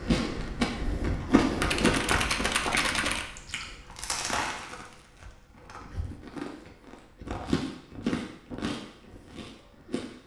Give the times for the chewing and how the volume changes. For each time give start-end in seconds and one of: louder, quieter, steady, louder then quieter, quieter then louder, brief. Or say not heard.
0.0-10.2 quieter.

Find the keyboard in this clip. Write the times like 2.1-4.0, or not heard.
1.6-3.2.